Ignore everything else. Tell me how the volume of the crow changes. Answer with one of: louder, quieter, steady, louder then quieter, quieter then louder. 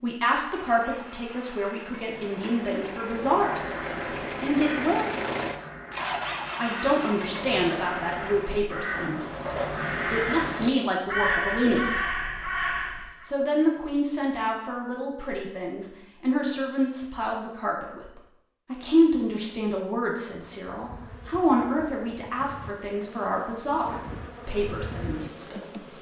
louder.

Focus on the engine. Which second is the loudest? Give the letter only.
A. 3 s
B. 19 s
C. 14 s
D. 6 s
D.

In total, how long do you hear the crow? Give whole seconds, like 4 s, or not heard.
10 s.